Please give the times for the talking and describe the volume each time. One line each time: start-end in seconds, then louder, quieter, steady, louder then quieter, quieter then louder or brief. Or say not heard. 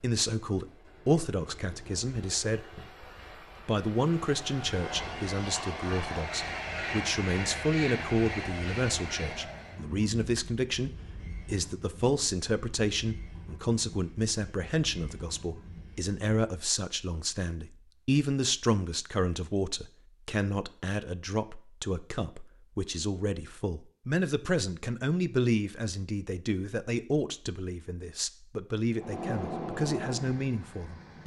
0.0-2.8 brief
3.6-31.2 steady.